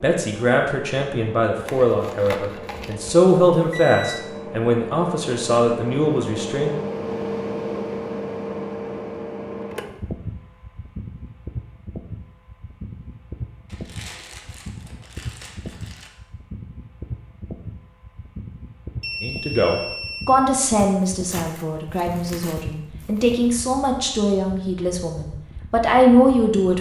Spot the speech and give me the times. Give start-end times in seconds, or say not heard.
0.0-6.7, 19.2-26.7.